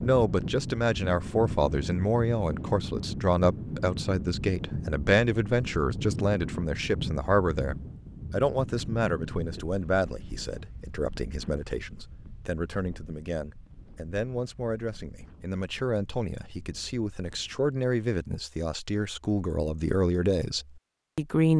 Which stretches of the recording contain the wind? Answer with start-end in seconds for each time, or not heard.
0.0-17.7.